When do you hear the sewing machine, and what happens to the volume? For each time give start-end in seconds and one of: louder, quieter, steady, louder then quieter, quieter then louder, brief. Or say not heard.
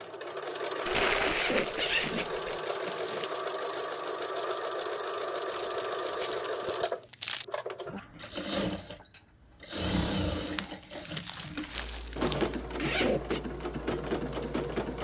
0.0-14.9 steady.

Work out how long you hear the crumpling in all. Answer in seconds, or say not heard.
6 s.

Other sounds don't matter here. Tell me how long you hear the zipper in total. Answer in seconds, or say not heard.
3 s.